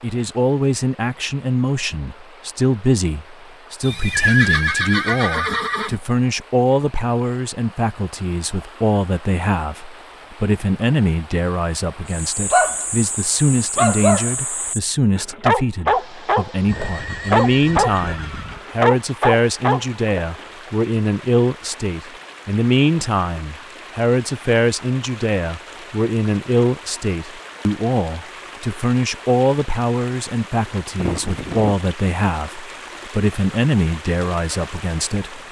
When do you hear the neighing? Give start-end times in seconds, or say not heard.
3.8-6.0, 16.6-18.6, 30.9-31.8.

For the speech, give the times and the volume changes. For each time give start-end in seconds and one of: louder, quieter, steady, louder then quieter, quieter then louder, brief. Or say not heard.
0.0-35.4 steady.